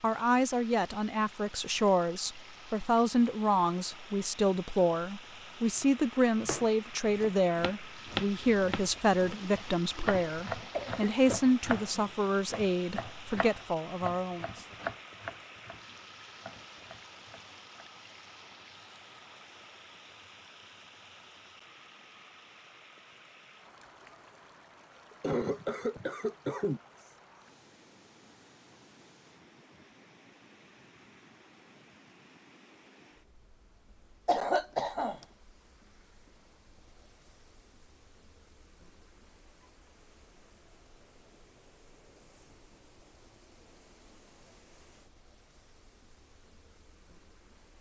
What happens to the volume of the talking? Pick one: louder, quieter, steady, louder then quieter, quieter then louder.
steady.